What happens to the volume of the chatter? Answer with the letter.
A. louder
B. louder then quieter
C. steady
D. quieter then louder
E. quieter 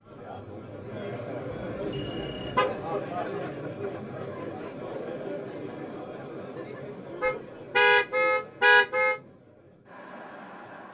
E.